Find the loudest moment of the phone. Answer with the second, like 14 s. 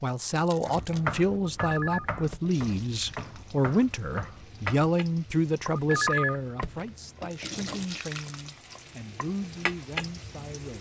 6 s.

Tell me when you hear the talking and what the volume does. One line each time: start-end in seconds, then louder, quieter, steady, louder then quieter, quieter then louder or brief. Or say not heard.
0.0-10.7 quieter.